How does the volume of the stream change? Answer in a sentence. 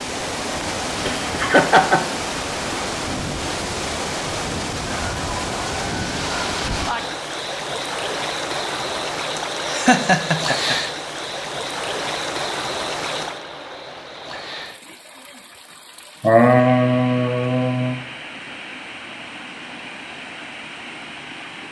The volume of the stream goes down.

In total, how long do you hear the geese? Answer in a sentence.
You can hear the geese for 2 seconds altogether.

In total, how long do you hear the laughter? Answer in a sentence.
The laughter can be heard for 4 seconds in total.